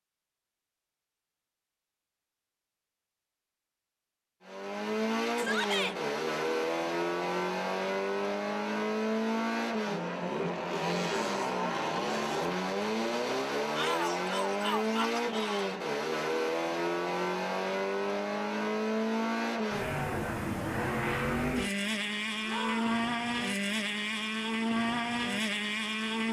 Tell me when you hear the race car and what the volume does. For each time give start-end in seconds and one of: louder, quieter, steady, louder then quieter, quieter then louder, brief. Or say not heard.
4.4-26.2 steady.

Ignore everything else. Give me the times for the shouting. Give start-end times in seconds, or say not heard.
5.3-6.0, 13.8-15.7, 22.4-23.1.